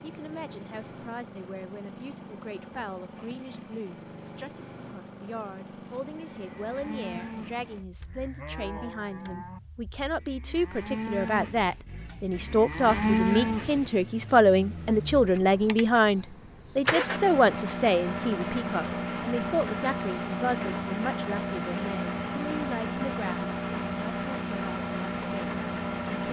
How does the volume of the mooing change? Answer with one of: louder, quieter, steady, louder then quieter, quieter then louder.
quieter then louder.